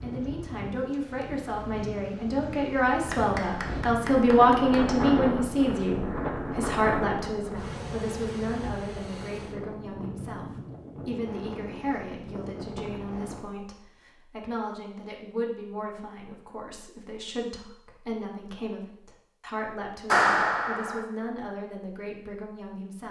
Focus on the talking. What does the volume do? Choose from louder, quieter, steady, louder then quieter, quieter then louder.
quieter.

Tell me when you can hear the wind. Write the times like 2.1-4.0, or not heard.
0.0-13.4.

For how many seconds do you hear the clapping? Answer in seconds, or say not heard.
3 s.